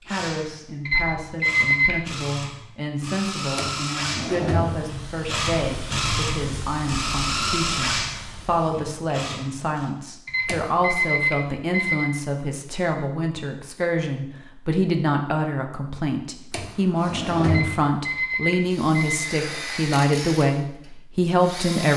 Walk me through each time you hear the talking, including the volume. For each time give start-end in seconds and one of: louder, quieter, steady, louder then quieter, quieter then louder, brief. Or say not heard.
0.0-21.9 louder.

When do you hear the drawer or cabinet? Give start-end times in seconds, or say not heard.
3.5-5.0, 10.4-10.9, 16.5-17.9.